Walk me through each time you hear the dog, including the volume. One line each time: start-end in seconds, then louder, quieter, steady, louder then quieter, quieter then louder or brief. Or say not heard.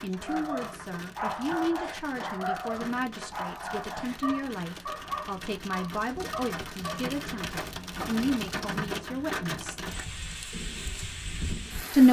0.1-7.1 steady.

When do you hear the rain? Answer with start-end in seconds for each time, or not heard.
0.0-12.0.